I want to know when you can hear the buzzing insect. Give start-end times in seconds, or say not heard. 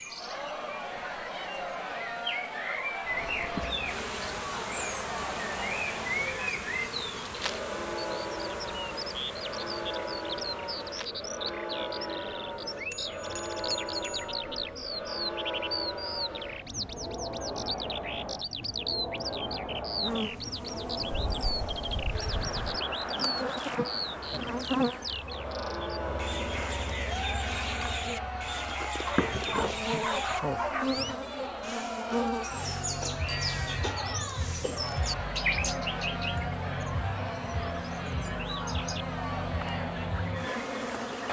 3.0-17.0, 19.9-41.2.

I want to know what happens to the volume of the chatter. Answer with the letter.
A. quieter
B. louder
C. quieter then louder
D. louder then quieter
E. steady
E.